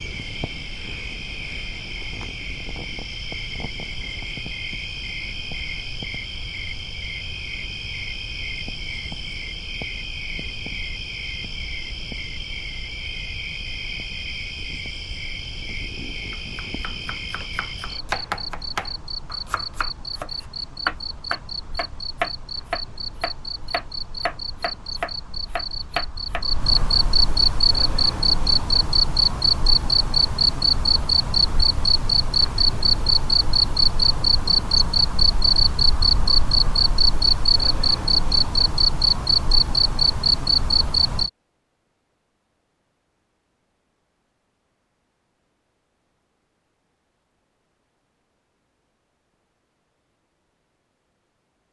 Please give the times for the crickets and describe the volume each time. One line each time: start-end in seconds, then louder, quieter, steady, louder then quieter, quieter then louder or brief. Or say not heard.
0.0-41.3 louder.